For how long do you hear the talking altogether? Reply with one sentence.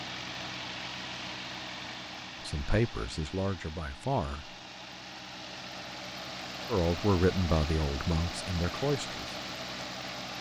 The talking can be heard for 5 seconds in total.